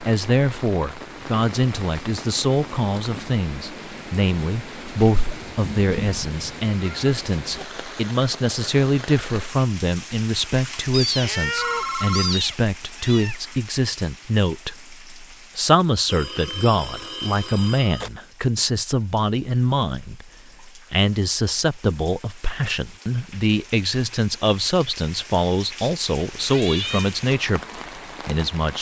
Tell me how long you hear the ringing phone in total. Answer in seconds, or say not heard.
3 s.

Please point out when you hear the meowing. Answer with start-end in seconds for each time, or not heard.
5.6-7.7, 10.9-13.4, 25.8-27.1.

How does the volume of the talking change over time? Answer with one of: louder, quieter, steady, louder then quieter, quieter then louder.
steady.